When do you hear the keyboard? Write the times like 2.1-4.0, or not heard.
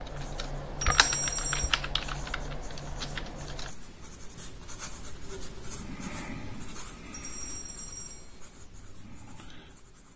0.0-3.8.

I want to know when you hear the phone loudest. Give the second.
1 s.